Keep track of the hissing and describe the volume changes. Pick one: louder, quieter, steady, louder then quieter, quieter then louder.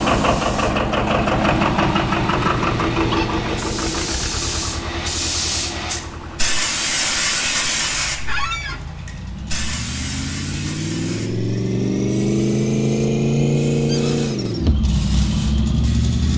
louder then quieter.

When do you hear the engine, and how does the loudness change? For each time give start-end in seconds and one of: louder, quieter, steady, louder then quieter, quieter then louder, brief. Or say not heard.
0.0-16.3 quieter then louder.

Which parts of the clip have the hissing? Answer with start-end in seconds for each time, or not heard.
0.0-16.3.